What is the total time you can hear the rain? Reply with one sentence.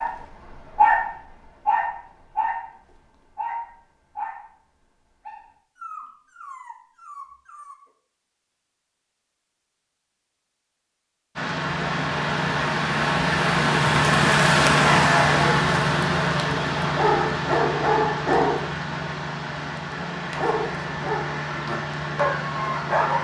The rain can be heard for 12 seconds in total.